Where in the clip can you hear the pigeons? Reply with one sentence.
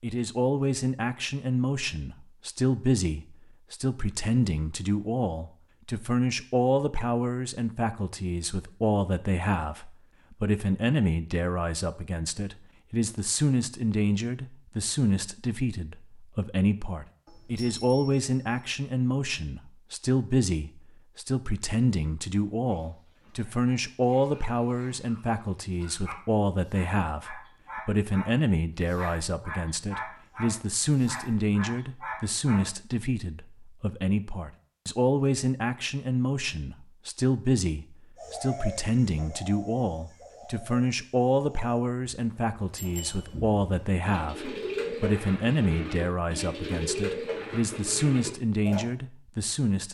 The pigeons can be heard from 38.1 to 48.9 s.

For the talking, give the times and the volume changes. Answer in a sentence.
You can hear the talking from 0.0 to 49.8 s, at a steady volume.